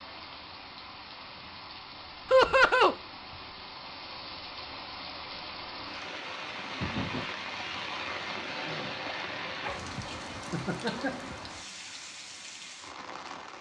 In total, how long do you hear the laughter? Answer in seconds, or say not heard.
2 s.